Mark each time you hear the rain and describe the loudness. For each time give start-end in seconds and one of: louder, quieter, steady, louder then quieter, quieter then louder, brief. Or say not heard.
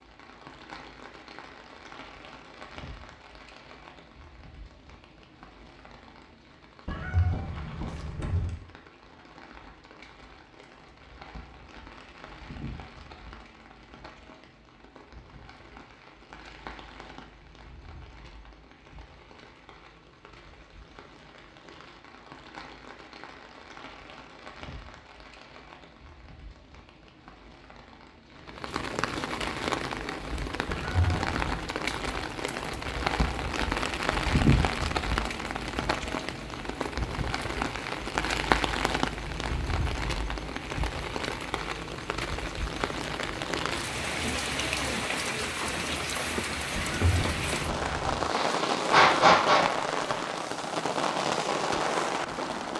0.0-52.7 louder.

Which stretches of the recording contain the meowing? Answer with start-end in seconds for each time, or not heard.
6.8-8.6, 30.6-31.6, 46.8-48.2.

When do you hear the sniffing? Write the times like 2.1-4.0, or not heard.
48.2-49.6.